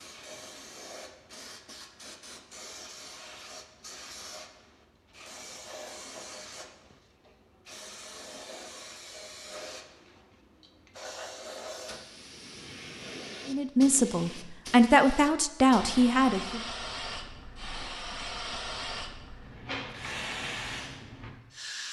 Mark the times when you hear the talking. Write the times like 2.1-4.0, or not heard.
13.4-16.6.